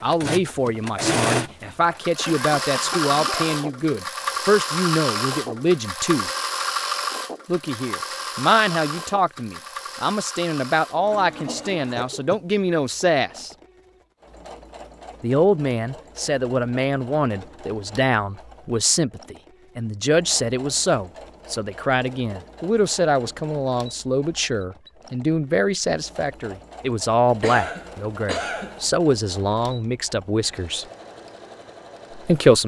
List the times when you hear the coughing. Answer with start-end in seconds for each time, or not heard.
1.6-3.5, 11.4-12.4, 27.4-28.8.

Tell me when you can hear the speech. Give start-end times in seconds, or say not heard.
0.0-6.3, 7.5-13.5, 15.2-30.9, 32.1-32.6.